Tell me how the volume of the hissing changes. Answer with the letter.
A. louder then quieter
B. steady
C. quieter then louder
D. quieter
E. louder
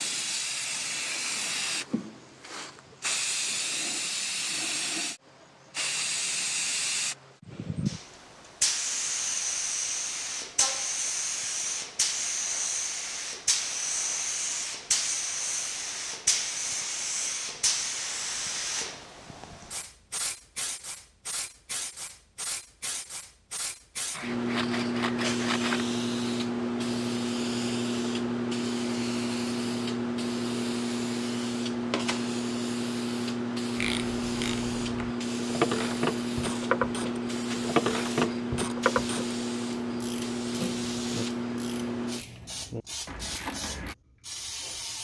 B.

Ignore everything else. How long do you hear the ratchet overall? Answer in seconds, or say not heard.
10 s.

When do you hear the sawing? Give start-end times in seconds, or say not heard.
24.1-25.9.